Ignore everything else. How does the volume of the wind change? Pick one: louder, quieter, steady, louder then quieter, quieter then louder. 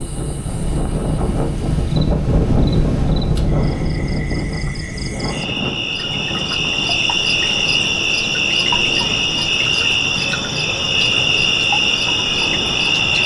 quieter.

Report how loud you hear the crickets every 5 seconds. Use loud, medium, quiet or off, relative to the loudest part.
quiet, loud, loud.